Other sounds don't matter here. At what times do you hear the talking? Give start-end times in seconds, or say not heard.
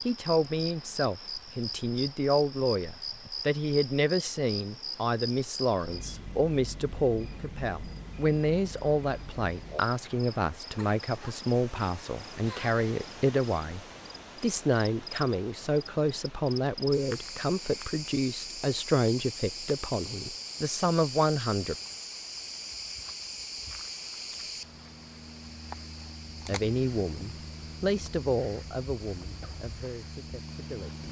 0.1-13.8, 14.4-21.8, 26.4-31.0.